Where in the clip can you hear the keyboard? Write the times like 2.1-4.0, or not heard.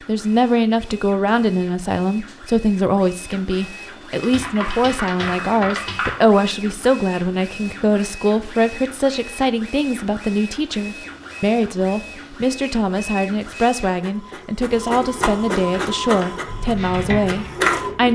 4.2-6.2, 15.7-18.1.